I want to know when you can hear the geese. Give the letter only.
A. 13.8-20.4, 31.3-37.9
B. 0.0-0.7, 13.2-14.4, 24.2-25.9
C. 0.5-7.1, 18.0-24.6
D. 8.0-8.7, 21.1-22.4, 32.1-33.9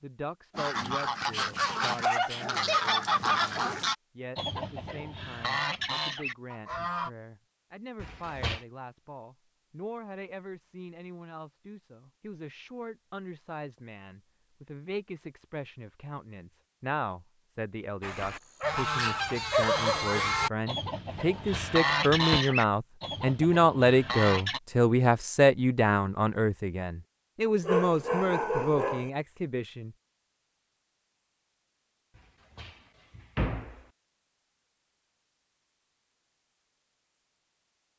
C.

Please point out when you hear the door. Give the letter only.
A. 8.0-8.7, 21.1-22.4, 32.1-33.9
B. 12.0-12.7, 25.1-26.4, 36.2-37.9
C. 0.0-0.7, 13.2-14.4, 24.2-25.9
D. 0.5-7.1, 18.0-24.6
A.